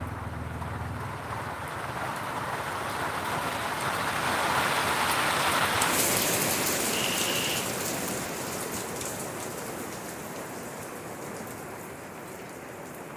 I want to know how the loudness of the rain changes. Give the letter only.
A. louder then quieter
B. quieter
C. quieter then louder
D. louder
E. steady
A.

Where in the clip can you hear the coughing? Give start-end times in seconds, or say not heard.
6.9-7.8.